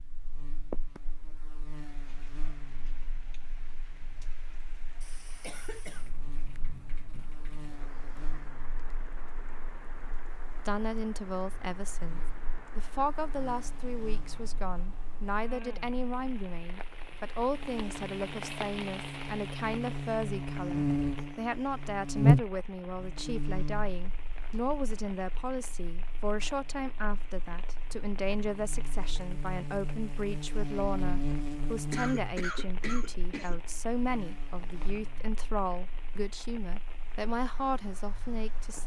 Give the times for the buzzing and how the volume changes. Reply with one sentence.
You can hear the buzzing from 0.0 to 38.8 s, getting louder then quieter.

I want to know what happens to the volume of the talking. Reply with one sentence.
The volume of the talking stays about the same.